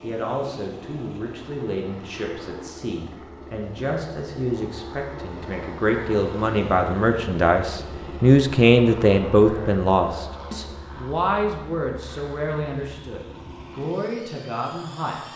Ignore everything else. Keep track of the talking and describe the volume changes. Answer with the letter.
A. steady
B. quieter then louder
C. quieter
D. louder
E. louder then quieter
E.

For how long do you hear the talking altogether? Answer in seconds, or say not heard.
15 s.